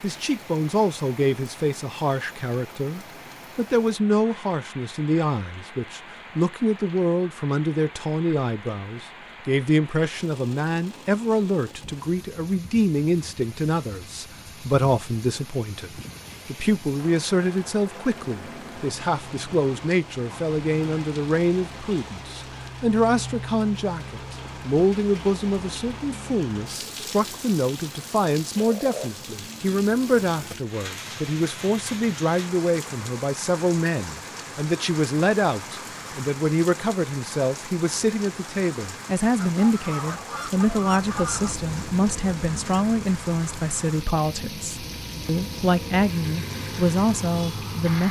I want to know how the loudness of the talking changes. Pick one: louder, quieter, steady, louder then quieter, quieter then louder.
steady.